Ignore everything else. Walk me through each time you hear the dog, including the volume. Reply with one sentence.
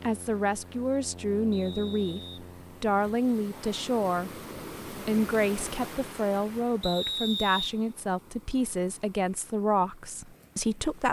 You can't hear the dog here.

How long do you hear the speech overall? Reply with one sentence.
You can hear the speech for 10 seconds altogether.